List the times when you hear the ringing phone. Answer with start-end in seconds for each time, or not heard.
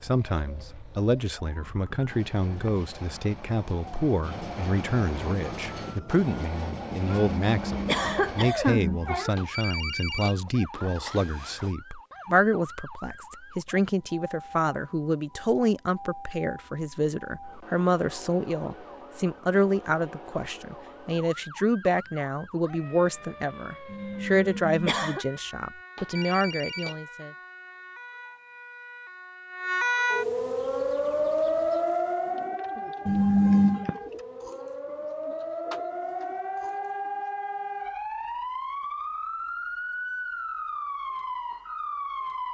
9.3-11.8, 25.9-27.0.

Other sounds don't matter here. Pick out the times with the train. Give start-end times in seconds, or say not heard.
2.0-8.5.